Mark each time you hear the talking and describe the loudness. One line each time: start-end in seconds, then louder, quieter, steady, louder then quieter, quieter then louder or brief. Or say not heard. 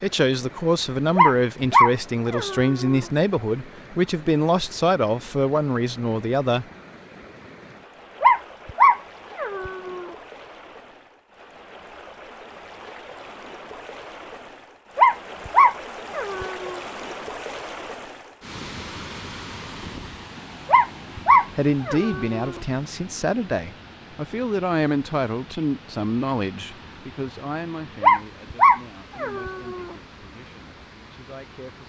0.0-6.7 steady
21.6-31.8 quieter.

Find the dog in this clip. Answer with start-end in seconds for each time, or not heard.
1.1-3.0, 8.2-10.1, 14.9-16.8, 20.6-22.6, 28.0-29.9.